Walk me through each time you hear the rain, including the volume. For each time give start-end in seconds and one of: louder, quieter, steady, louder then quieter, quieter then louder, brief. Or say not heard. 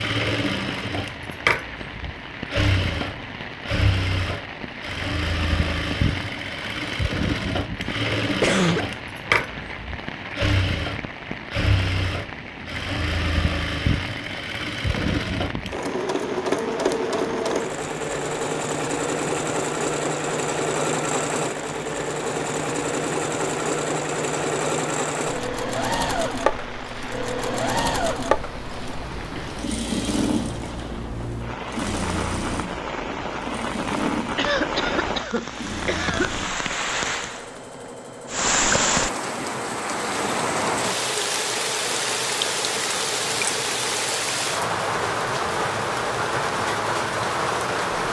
0.0-48.0 louder.